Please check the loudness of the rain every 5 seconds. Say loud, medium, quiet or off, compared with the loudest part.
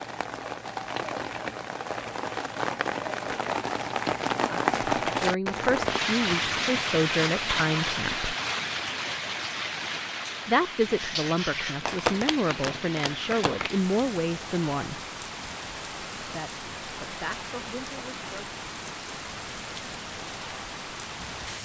loud, loud, medium, medium, medium.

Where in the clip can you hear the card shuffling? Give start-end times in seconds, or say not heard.
11.8-13.7.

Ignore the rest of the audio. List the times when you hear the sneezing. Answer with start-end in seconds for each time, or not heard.
not heard.